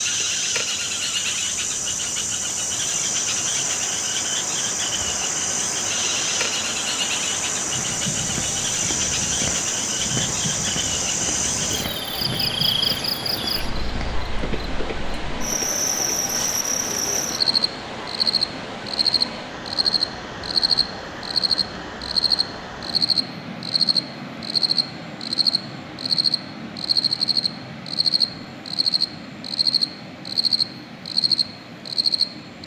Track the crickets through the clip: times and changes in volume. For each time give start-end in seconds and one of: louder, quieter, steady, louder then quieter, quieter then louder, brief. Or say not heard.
0.0-32.6 steady.